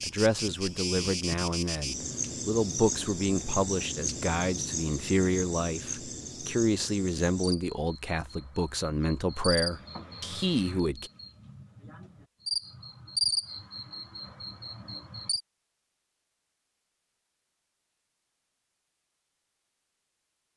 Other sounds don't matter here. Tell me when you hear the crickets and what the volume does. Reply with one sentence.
The crickets can be heard from 0.0 to 15.4 s, getting quieter then louder.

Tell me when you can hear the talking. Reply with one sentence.
You can hear the talking from 0.0 to 11.1 s.